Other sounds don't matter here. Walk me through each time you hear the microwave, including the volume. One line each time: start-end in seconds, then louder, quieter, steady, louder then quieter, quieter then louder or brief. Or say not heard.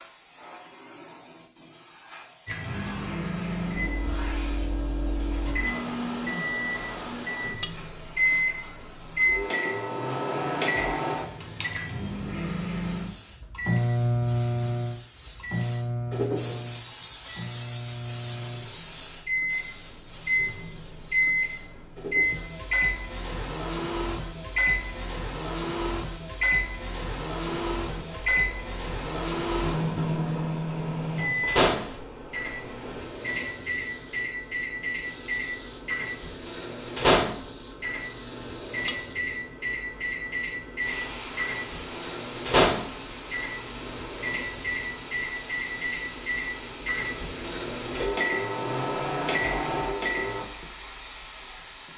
2.5-50.5 steady.